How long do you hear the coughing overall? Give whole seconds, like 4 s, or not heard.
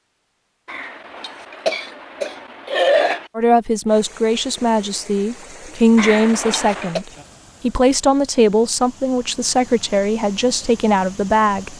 4 s.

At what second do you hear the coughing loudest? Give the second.
3 s.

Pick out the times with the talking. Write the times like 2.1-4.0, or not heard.
3.4-11.7.